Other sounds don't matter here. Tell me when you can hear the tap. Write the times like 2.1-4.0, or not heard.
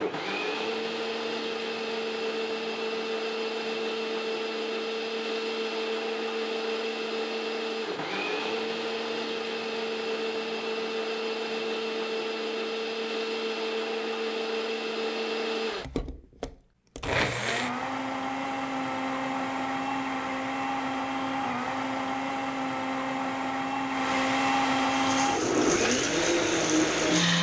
24.9-27.3.